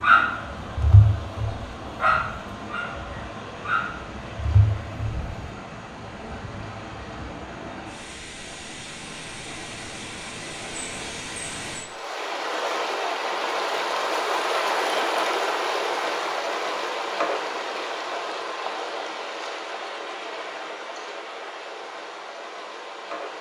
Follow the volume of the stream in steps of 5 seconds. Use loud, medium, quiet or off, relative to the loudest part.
medium, medium, loud, loud, medium.